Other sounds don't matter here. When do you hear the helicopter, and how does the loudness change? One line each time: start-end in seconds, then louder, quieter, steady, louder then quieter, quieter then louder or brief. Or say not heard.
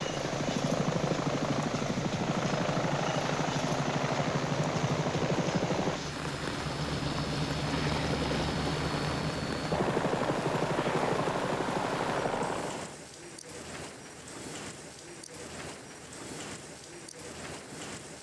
0.0-12.9 steady.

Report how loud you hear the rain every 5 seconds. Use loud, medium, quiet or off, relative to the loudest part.
loud, loud, loud, medium.